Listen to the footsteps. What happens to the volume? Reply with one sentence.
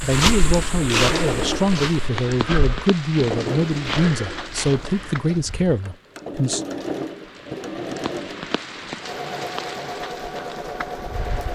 The loudness of the footsteps goes down.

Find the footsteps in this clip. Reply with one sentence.
The footsteps can be heard from 0.0 to 5.4 s.